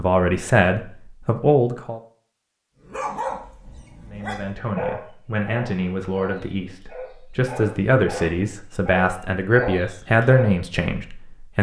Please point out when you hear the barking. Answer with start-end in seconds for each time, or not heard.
2.9-10.6.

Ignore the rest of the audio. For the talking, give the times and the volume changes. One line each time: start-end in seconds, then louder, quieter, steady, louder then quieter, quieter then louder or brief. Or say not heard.
0.0-2.0 brief
4.0-11.5 louder.